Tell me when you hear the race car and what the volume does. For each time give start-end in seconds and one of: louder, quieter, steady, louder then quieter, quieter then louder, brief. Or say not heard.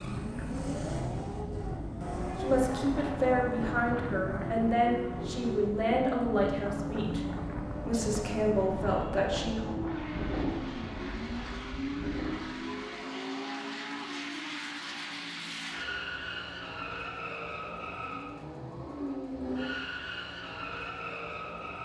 0.0-21.8 steady.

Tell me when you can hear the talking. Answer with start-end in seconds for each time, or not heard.
2.4-7.2, 7.8-9.7.